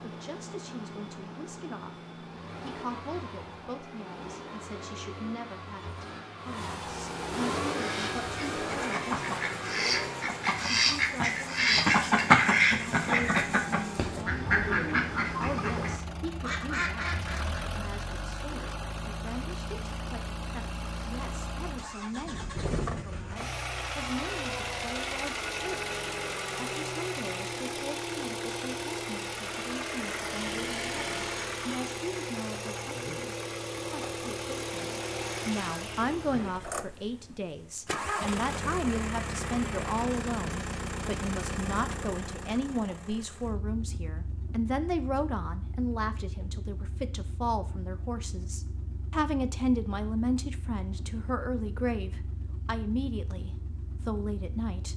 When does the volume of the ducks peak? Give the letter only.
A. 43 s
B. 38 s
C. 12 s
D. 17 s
C.